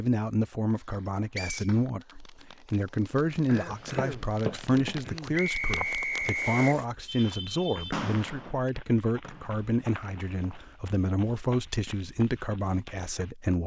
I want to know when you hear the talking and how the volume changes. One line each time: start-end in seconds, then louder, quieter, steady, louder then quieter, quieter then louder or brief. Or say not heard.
0.0-13.6 steady.